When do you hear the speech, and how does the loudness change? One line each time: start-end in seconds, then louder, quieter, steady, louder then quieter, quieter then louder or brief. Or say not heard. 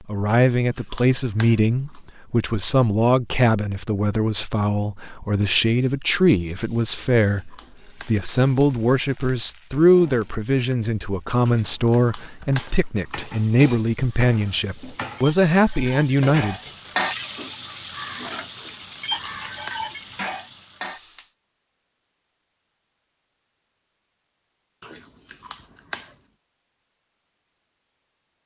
0.1-16.6 steady.